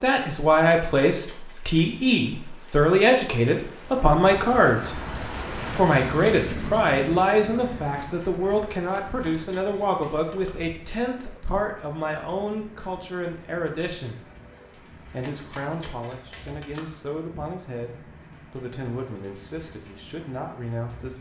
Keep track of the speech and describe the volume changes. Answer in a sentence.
The loudness of the speech goes down.